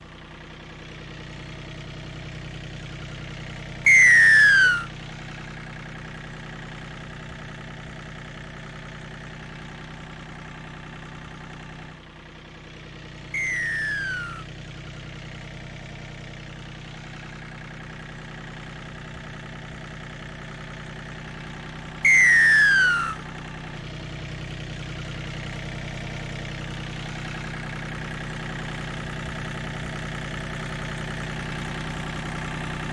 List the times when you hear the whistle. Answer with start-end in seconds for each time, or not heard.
3.9-4.8, 13.3-14.4, 22.0-23.1.